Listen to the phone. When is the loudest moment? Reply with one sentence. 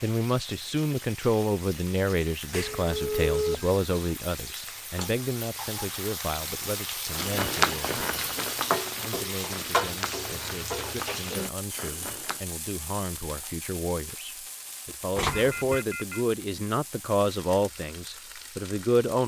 The loudest moment of the phone is at 3 seconds.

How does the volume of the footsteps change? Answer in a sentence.
The volume of the footsteps goes down.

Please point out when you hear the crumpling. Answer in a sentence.
You can hear the crumpling from 15.2 to 15.8 s.